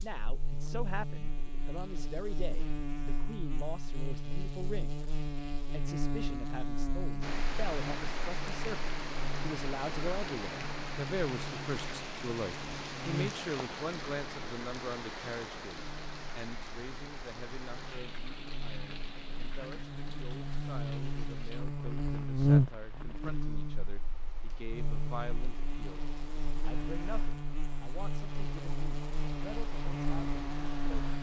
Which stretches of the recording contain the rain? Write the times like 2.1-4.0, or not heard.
7.2-31.1.